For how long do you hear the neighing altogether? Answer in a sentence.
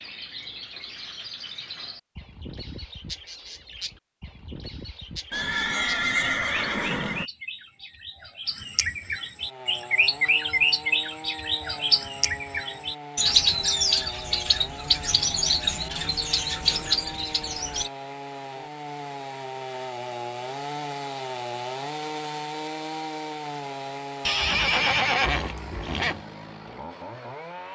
The neighing can be heard for 4 seconds in total.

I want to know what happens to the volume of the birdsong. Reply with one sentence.
The loudness of the birdsong goes up.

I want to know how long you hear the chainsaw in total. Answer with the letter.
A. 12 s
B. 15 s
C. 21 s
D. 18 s
D.